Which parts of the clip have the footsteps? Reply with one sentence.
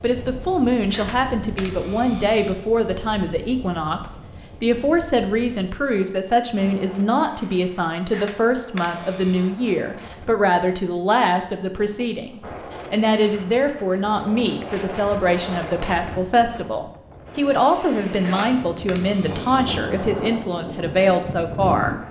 You can't hear the footsteps here.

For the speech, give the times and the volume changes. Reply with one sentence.
You can hear the speech from 0.0 to 21.9 s, at a steady volume.